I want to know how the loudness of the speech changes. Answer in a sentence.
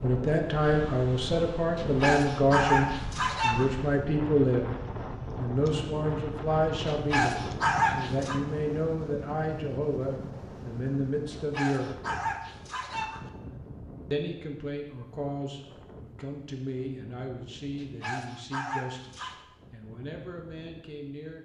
The volume of the speech goes down.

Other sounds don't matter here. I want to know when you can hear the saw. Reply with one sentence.
The saw can't be heard in this clip.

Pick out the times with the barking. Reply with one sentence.
You can hear the barking from 1.8 to 3.7 s, from 6.8 to 8.4 s, from 11.3 to 13.2 s and from 17.8 to 19.4 s.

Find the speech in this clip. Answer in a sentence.
The speech can be heard from 0.0 to 4.7 s, from 5.3 to 11.9 s and from 14.1 to 21.4 s.